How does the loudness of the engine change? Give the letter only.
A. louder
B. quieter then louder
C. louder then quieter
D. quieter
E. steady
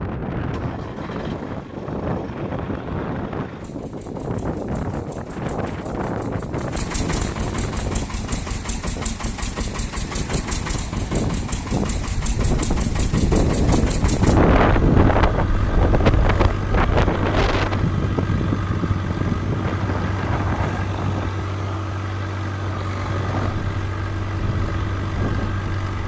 A.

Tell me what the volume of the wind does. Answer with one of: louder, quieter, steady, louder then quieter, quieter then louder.
louder then quieter.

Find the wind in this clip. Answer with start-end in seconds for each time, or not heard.
0.0-25.8.